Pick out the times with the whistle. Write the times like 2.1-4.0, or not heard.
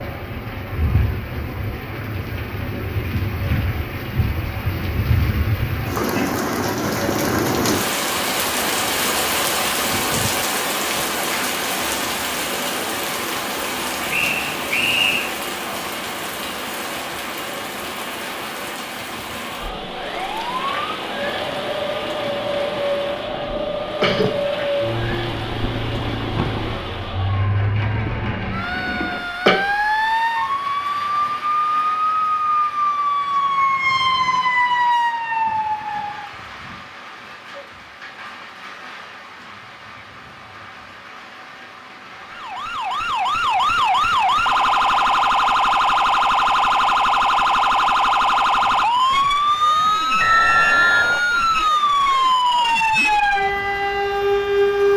14.1-15.3, 50.2-51.2.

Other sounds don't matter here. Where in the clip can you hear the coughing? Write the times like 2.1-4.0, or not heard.
23.4-24.4, 28.9-29.6.